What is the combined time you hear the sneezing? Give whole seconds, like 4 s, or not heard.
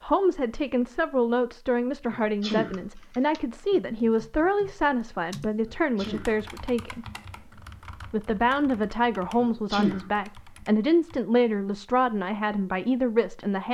2 s.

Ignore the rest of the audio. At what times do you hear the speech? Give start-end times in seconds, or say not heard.
0.0-13.6.